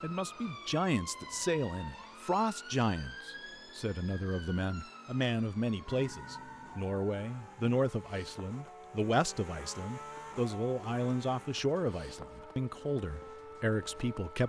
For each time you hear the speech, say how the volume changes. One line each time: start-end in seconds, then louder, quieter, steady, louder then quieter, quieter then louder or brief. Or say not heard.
0.0-14.4 steady.